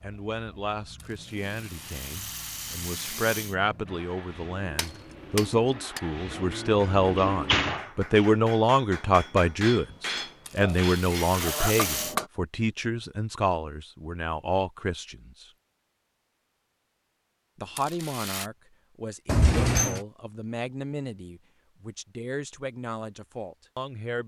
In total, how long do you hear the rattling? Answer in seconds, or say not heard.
5 s.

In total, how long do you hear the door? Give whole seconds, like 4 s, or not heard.
2 s.